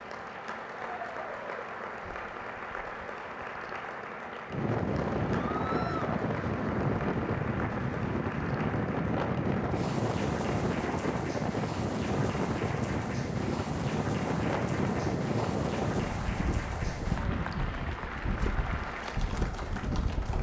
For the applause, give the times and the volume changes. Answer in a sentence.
You can hear the applause from 0.0 to 20.3 s, at a steady volume.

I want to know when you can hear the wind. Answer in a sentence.
You can hear the wind from 4.5 to 20.3 s.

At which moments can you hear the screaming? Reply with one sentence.
You can hear the screaming from 5.4 to 6.2 s.